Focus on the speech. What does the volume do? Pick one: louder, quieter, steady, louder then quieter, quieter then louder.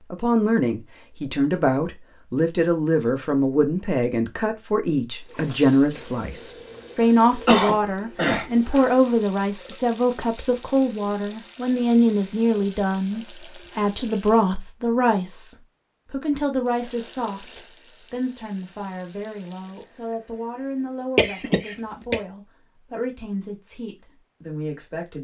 quieter.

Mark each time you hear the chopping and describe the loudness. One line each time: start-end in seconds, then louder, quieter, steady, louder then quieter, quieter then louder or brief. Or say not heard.
not heard.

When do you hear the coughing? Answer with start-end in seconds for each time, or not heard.
7.5-8.9, 21.1-22.2.